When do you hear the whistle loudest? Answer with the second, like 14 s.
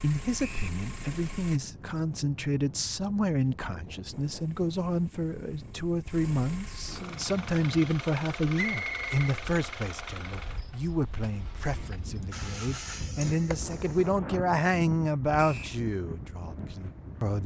9 s.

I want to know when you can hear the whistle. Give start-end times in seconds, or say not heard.
0.3-0.8, 8.6-9.2, 15.3-15.8.